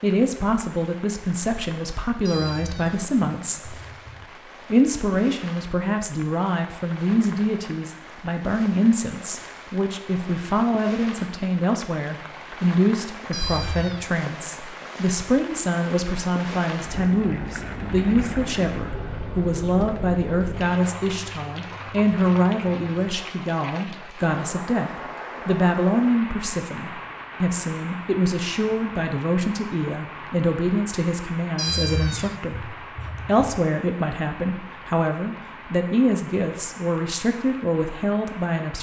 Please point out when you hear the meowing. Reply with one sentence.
You can hear the meowing from 2.2 to 4.2 s, from 13.3 to 14.2 s and from 31.6 to 33.6 s.